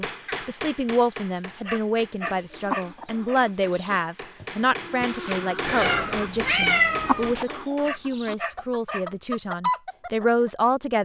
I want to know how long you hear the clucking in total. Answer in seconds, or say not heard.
8 s.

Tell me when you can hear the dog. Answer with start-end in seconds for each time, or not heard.
1.6-3.4, 7.8-9.1.